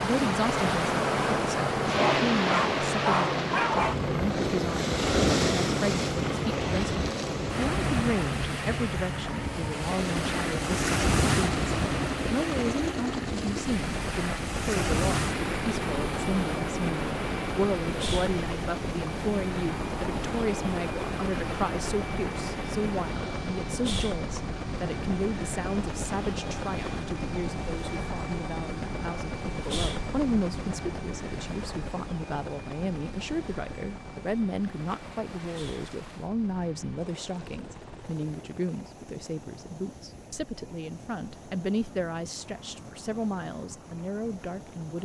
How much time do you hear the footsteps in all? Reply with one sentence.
The footsteps can't be heard in this clip.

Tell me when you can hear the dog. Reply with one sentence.
The dog can be heard from 1.8 to 4.0 s.